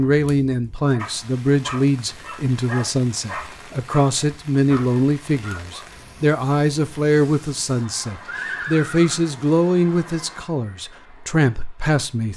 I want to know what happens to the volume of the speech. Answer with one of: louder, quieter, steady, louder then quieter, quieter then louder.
steady.